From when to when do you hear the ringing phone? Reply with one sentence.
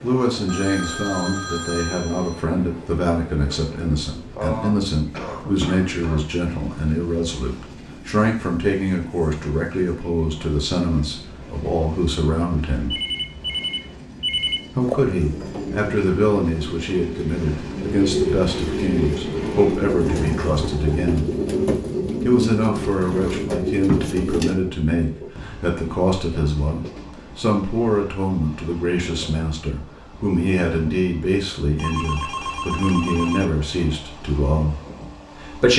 The ringing phone can be heard from 0.5 to 2.4 s, from 12.9 to 14.6 s and from 31.8 to 33.5 s.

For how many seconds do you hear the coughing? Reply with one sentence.
The coughing can be heard for 2 seconds in total.